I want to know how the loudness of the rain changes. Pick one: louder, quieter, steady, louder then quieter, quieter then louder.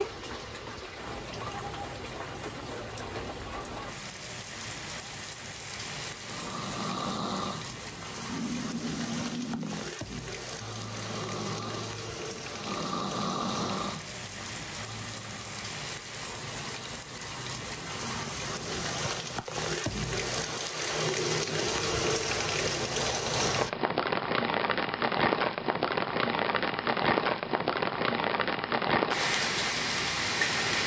louder.